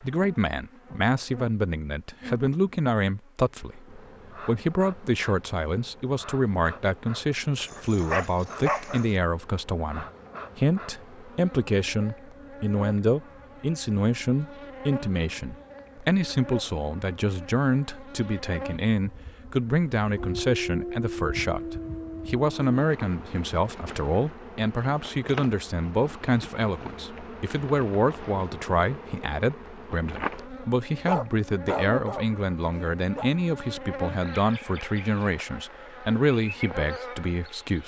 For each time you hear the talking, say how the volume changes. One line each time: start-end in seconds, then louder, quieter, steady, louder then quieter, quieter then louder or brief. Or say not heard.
0.0-37.8 steady.